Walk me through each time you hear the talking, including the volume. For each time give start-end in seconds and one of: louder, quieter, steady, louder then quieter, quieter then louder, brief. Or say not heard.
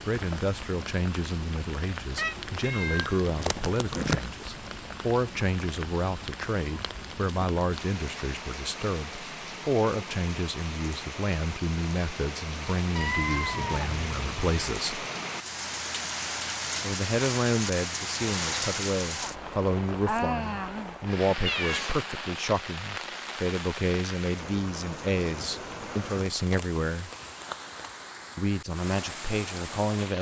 0.1-15.1 steady
16.8-27.1 steady
28.4-30.1 brief.